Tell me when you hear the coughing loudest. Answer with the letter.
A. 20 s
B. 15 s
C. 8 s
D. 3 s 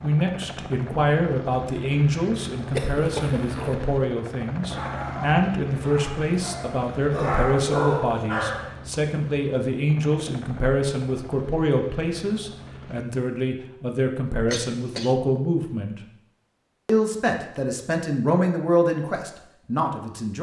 D.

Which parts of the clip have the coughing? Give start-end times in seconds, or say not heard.
2.7-3.5, 14.5-15.2.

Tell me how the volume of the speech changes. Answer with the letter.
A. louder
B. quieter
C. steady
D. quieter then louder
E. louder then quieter
C.